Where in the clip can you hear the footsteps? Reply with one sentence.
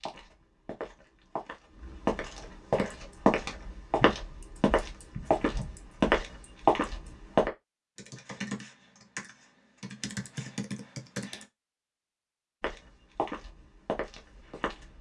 You can hear the footsteps from 0.0 to 7.5 s and from 12.6 to 14.9 s.